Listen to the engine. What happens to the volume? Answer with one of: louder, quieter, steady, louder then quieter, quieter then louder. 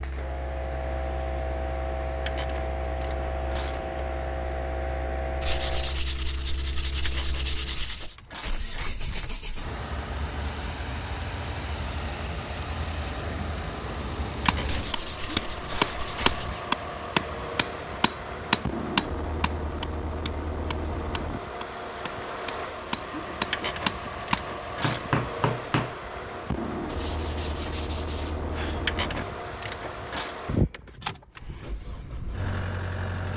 louder.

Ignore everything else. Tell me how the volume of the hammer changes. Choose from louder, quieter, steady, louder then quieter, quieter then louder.
quieter then louder.